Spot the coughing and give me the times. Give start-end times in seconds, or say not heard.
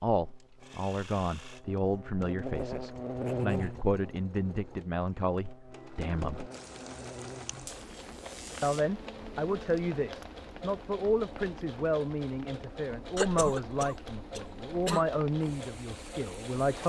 13.2-15.1.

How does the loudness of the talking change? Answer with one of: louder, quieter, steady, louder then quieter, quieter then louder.
steady.